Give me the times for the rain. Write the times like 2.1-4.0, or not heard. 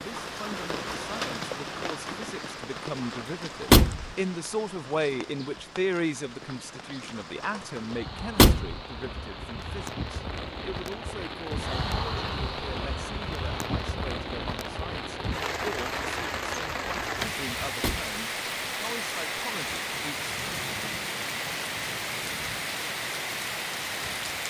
0.0-24.4.